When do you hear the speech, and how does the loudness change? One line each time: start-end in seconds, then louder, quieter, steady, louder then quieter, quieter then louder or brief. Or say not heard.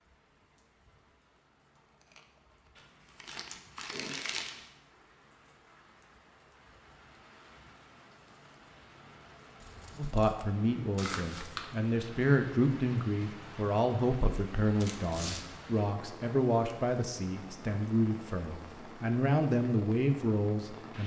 9.9-21.0 steady.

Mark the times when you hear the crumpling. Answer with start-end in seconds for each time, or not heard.
2.8-4.7, 10.9-11.7, 14.8-15.4.